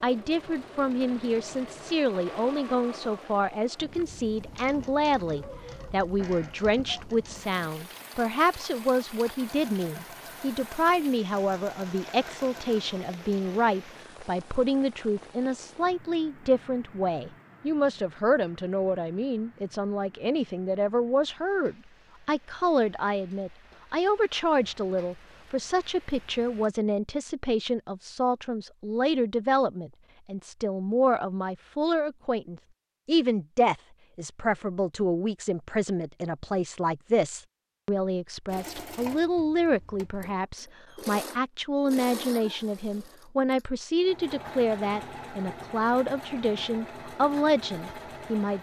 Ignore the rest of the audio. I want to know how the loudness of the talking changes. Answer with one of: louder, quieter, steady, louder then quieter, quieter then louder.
steady.